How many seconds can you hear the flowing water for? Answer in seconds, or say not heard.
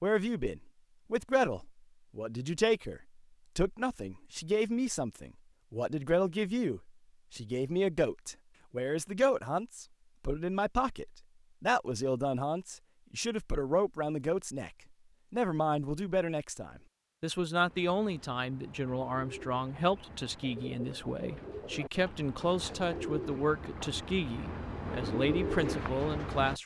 not heard.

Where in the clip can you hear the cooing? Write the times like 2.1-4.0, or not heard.
17.6-26.6.